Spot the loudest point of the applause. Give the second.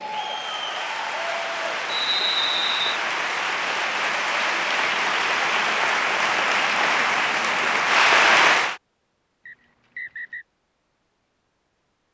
8 s.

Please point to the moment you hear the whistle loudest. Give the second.
2 s.